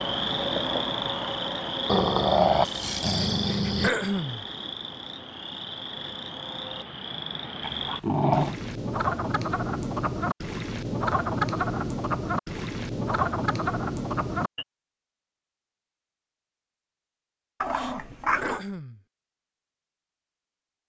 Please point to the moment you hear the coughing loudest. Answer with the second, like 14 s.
4 s.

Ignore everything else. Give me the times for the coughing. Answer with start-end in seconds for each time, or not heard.
3.8-4.5, 18.4-19.0.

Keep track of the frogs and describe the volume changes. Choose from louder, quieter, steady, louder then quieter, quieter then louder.
quieter then louder.